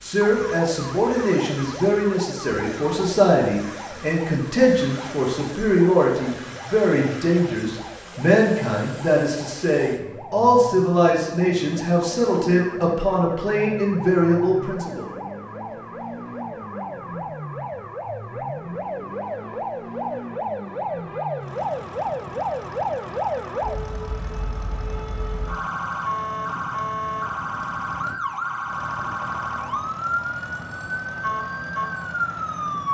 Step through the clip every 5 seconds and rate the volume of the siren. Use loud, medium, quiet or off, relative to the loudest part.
medium, quiet, medium, medium, loud, loud, loud.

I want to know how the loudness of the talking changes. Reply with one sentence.
The volume of the talking stays about the same.